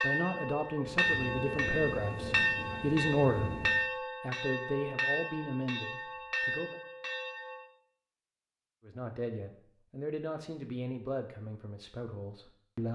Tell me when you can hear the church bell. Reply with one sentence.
You can hear the church bell from 0.0 to 7.6 s.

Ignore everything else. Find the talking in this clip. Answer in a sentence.
You can hear the talking from 0.0 to 6.8 s and from 8.8 to 12.9 s.